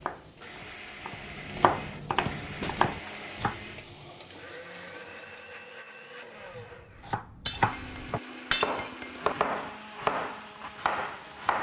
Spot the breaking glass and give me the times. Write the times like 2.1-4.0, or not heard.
2.6-3.3, 7.5-9.2.